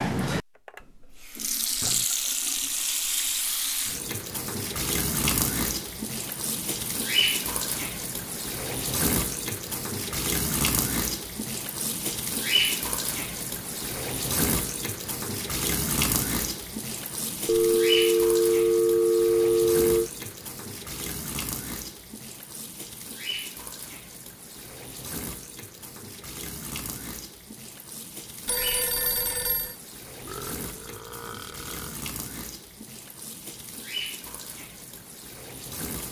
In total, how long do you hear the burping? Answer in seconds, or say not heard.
2 s.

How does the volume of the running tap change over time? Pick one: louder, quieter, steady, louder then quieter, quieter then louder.
quieter.